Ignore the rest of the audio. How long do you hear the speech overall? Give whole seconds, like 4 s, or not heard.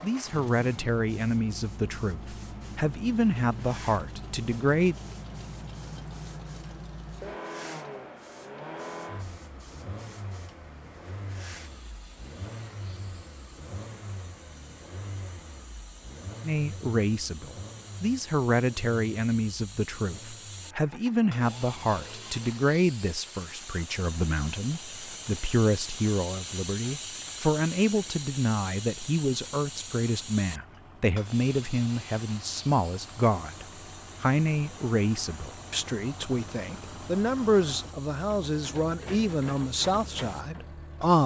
30 s.